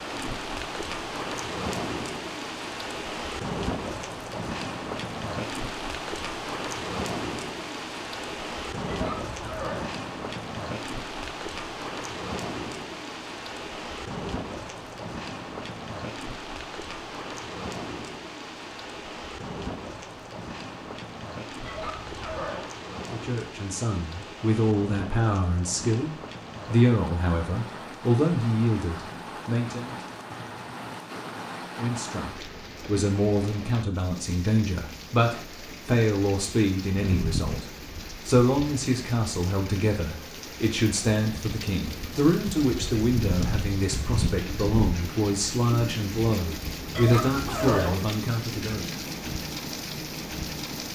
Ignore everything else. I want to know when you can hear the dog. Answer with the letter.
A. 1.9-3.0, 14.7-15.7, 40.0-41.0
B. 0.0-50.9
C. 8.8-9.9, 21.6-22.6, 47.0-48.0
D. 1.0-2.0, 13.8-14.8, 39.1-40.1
C.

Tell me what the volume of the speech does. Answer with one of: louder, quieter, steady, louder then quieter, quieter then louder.
steady.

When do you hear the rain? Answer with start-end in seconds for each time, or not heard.
0.0-50.9.